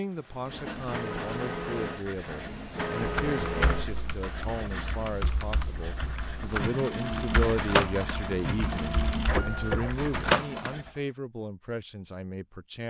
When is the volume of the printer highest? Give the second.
10 s.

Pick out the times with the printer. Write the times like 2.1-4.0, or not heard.
0.5-4.0, 6.5-10.8.